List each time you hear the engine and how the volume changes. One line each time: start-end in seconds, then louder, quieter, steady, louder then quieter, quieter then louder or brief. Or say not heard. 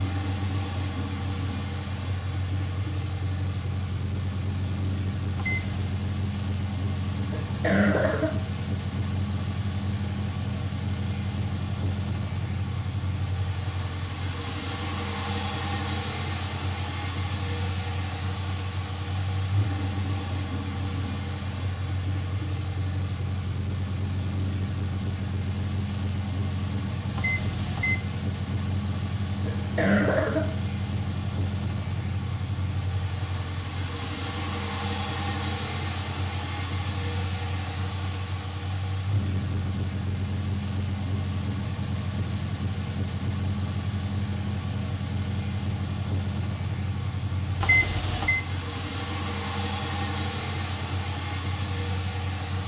0.0-52.6 steady.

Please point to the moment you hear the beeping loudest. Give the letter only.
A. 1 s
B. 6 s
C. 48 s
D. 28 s
C.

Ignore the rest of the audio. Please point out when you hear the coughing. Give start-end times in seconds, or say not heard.
7.3-8.4, 29.4-30.5.